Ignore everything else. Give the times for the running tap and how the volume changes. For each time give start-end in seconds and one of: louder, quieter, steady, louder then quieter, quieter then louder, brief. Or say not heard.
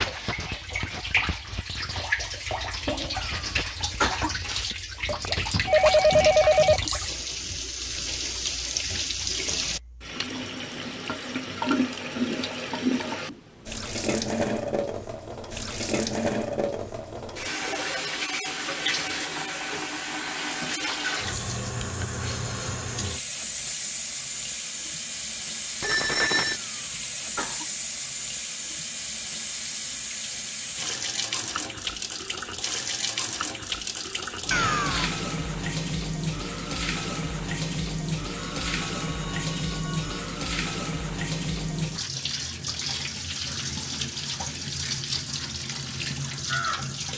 0.0-47.1 steady.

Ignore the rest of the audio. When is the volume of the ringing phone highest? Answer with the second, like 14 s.
6 s.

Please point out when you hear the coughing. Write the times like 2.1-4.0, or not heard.
3.1-4.3, 26.5-27.6, 34.5-35.1.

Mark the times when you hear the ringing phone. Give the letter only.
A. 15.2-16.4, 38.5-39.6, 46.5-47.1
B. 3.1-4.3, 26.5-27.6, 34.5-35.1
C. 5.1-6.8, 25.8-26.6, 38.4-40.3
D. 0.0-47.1
C.